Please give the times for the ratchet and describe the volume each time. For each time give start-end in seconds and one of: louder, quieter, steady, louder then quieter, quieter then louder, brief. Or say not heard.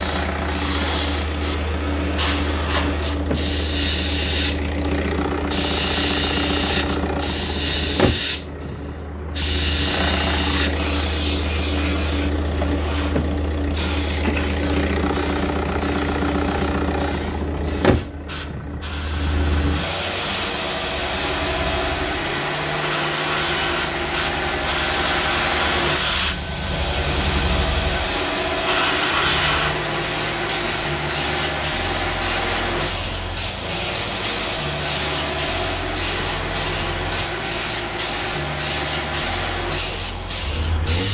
not heard.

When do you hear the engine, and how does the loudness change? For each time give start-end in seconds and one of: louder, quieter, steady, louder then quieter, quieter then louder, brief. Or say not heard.
0.0-41.0 steady.